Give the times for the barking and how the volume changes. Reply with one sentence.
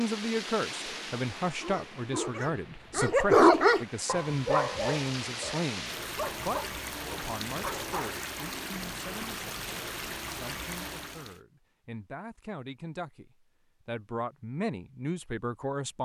The barking can be heard from 1.6 to 8.2 s, getting louder then quieter.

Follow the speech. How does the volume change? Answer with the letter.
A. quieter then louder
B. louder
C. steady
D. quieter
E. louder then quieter
A.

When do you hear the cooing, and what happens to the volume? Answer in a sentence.
You can't hear the cooing here.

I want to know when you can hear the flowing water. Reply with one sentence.
You can hear the flowing water from 0.0 to 11.4 s.